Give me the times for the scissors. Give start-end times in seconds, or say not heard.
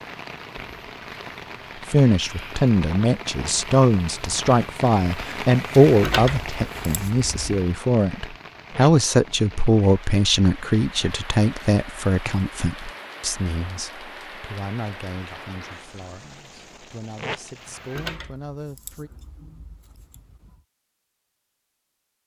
6.0-7.5, 17.9-20.6.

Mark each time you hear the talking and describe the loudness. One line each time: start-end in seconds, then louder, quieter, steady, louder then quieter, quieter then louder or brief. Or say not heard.
1.9-19.1 quieter.